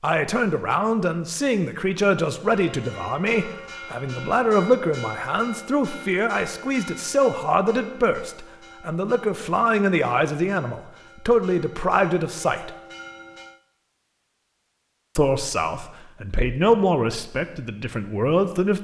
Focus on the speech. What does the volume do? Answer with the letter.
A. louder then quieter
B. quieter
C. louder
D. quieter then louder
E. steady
E.